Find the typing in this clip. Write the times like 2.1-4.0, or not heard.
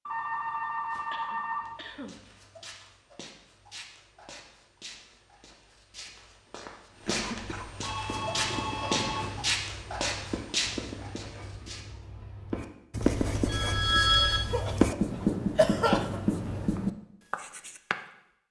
not heard.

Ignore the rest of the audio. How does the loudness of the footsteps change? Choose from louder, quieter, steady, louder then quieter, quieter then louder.
louder.